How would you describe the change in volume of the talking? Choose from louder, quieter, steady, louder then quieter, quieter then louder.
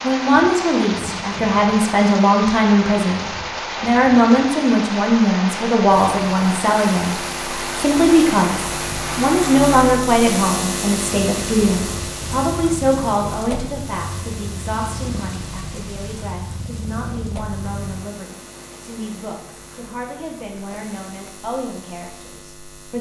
quieter.